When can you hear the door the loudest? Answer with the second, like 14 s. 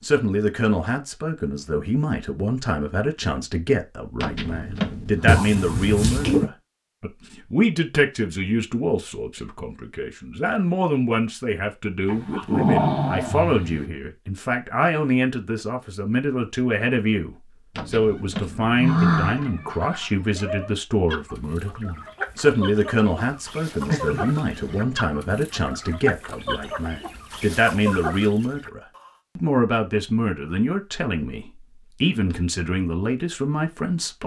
19 s.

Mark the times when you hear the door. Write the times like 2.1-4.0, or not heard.
4.2-5.3, 17.8-19.5.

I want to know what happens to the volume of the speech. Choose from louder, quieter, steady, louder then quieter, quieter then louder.
steady.